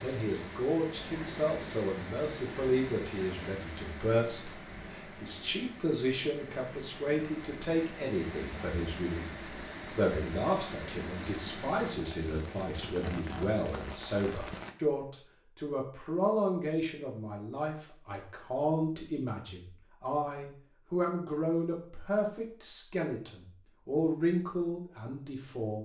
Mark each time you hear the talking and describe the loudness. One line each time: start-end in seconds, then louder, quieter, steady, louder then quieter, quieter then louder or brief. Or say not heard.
0.0-25.7 steady.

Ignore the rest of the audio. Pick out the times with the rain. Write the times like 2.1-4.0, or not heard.
0.0-14.8.